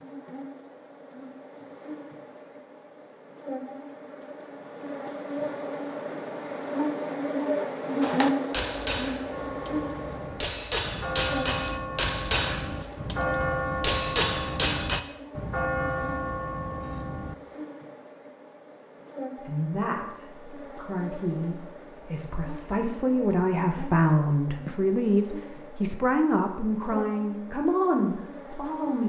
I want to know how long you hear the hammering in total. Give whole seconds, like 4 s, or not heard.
7 s.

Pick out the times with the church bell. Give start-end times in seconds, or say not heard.
9.3-17.4.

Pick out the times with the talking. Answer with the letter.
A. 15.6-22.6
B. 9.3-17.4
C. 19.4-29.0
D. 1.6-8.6
C.